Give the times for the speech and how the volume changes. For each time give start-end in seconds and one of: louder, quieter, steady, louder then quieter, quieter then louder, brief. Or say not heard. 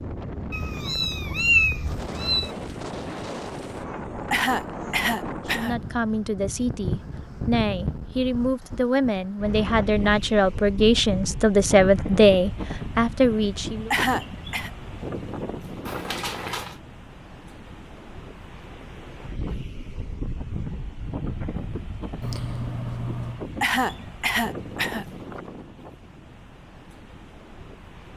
5.5-13.9 louder.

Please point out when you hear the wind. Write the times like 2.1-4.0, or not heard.
0.0-28.1.